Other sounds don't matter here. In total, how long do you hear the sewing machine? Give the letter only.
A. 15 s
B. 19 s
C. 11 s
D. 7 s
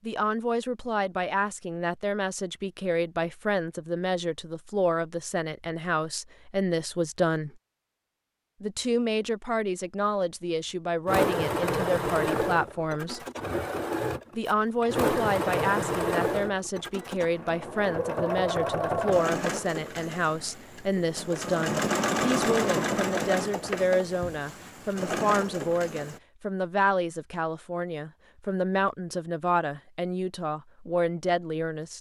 A.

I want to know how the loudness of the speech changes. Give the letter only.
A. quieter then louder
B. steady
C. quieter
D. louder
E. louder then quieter
B.